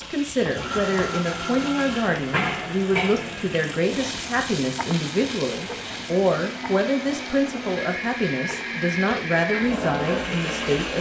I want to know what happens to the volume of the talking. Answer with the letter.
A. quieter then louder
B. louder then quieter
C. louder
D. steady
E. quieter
D.